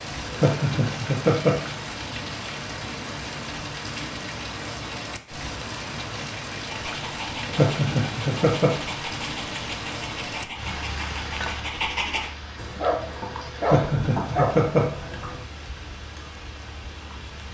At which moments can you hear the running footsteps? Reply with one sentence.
The running footsteps can't be heard in this clip.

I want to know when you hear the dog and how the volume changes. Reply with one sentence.
You can hear the dog from 6.7 to 15.4 s, getting louder.